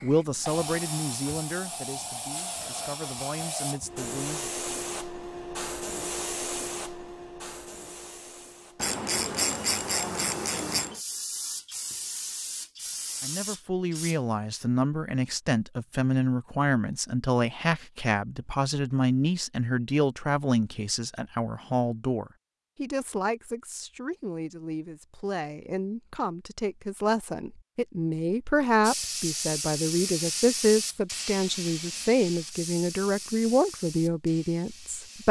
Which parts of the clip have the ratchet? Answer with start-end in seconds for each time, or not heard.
8.8-10.9.